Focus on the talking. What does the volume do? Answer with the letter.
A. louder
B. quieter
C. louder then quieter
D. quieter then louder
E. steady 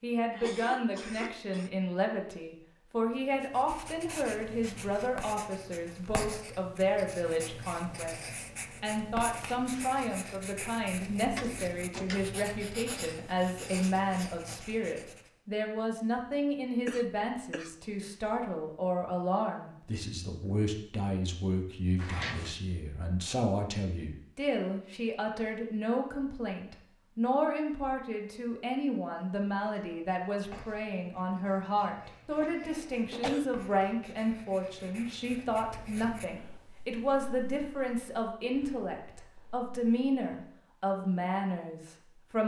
E.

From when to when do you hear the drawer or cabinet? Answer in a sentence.
The drawer or cabinet can be heard from 11.3 to 12.4 s, from 21.9 to 22.6 s and from 32.6 to 33.4 s.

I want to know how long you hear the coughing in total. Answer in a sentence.
The coughing can be heard for 4 seconds in total.